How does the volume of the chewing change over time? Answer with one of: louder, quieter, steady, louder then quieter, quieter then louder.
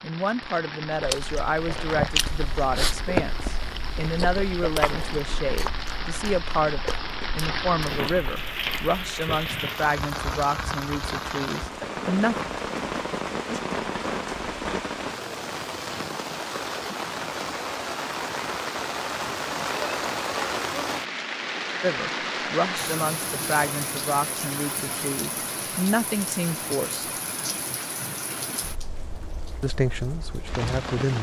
quieter.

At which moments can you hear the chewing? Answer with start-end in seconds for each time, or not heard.
0.8-9.6.